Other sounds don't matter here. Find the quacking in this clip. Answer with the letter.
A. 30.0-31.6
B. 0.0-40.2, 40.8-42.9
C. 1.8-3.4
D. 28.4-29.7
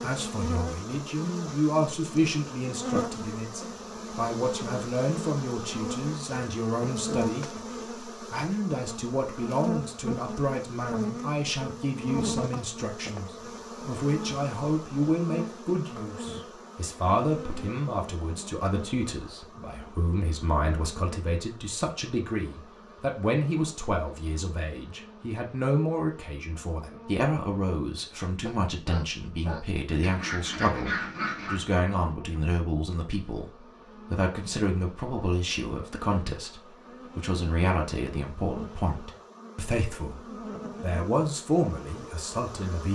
A.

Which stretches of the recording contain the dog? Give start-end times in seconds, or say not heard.
28.4-29.7.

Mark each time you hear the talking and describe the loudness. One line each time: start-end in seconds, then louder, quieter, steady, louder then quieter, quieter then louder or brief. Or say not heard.
0.0-40.2 steady
40.8-42.9 brief.